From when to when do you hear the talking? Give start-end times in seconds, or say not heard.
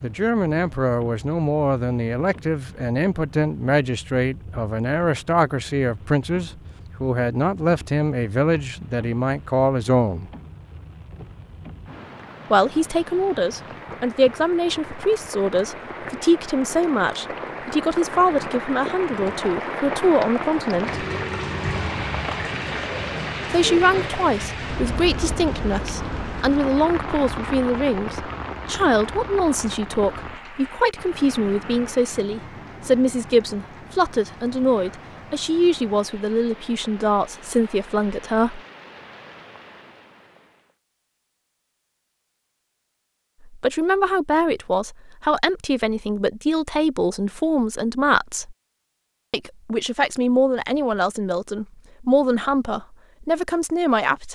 0.0-10.3, 12.5-21.1, 23.5-38.6, 43.5-48.5, 49.3-54.3.